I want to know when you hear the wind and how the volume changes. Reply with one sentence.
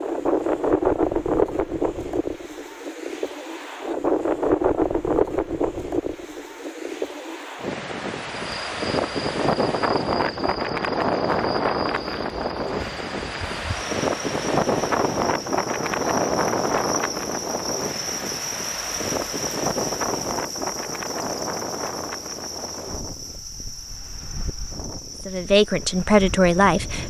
The wind can be heard from 0.0 to 27.0 s, getting quieter.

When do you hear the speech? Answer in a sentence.
You can hear the speech from 25.2 to 27.0 s.